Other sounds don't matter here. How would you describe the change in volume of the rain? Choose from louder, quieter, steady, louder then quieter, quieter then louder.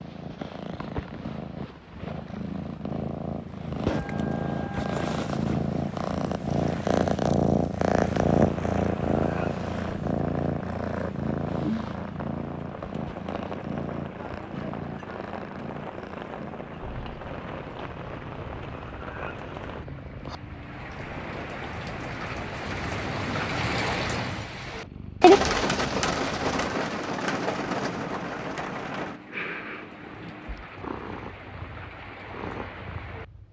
louder then quieter.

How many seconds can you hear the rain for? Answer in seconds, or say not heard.
25 s.